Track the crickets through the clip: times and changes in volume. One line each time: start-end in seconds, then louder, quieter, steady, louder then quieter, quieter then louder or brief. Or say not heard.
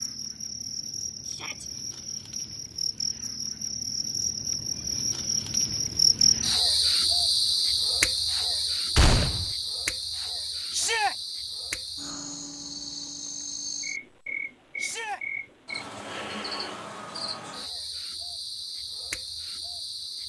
0.0-20.2 louder then quieter.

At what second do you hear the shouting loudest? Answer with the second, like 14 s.
11 s.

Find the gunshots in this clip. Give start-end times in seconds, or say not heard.
8.9-9.5.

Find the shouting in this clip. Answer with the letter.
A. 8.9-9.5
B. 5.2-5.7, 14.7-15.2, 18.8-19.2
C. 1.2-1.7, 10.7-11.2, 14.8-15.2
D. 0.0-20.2
C.